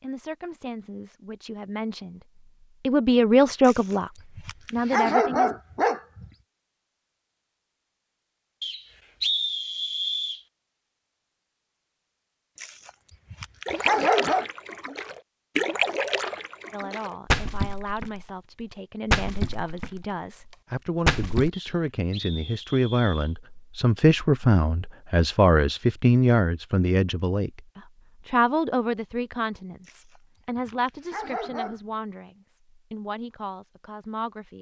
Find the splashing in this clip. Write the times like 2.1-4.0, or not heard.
13.7-18.2, 19.1-20.1, 21.1-21.5.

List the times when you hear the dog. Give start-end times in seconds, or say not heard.
3.6-6.2, 12.6-14.4, 29.9-31.8.